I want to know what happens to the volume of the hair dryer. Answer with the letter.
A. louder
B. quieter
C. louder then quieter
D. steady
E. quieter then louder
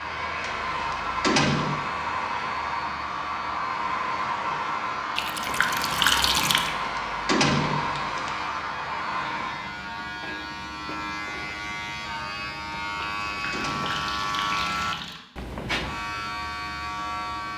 D.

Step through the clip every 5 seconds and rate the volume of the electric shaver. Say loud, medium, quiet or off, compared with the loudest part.
medium, medium, loud, loud.